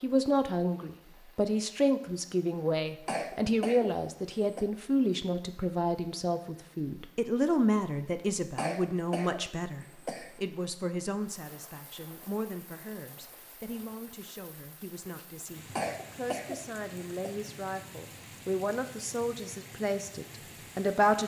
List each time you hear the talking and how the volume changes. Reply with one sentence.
The talking can be heard from 0.0 to 21.2 s, getting quieter then louder.